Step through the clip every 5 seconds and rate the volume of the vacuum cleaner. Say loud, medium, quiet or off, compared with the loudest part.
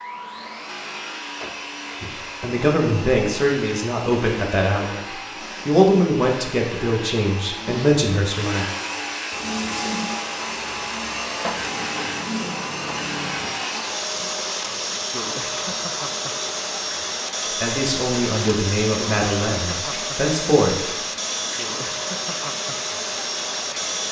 medium, loud, loud, loud, loud.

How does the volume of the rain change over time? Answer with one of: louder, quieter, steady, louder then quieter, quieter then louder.
steady.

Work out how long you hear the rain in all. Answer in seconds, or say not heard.
15 s.